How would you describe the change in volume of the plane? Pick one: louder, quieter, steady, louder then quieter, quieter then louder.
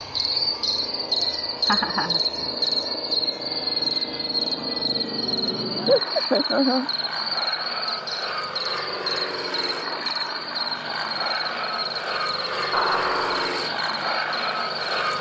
louder.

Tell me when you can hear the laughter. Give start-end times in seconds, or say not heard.
1.6-2.2, 5.8-6.9, 12.7-13.6.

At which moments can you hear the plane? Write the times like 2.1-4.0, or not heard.
0.0-15.1.